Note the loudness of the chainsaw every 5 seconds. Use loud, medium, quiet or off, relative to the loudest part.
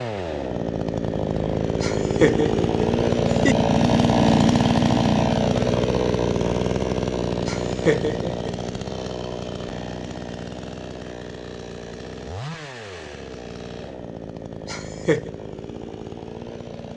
loud, loud, quiet, quiet.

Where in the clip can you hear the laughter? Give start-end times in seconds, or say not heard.
1.8-3.5, 7.5-8.6, 14.7-15.3.